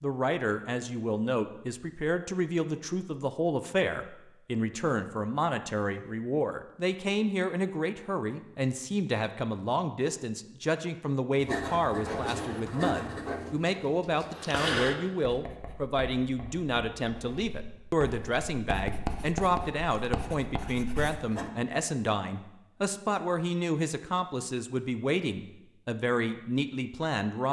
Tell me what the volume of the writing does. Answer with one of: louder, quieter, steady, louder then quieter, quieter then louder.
quieter then louder.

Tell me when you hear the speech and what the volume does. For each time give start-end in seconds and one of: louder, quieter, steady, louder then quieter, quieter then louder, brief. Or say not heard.
0.0-27.4 steady.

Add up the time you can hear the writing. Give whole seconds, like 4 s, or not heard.
10 s.